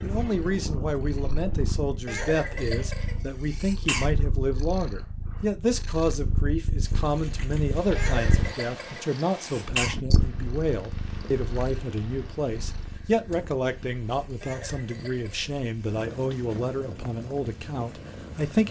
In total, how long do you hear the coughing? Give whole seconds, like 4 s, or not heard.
6 s.